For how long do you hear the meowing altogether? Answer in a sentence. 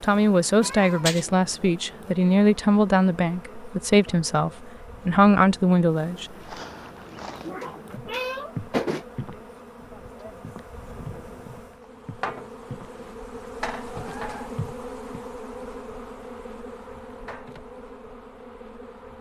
You can hear the meowing for 3 seconds altogether.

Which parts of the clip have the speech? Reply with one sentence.
You can hear the speech from 0.0 to 6.3 s.